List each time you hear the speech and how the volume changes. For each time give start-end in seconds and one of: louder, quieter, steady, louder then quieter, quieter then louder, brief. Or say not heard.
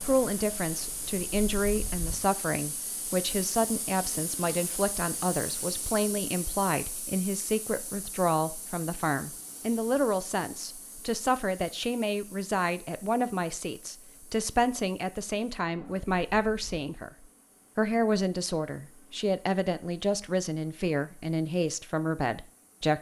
0.0-22.9 steady.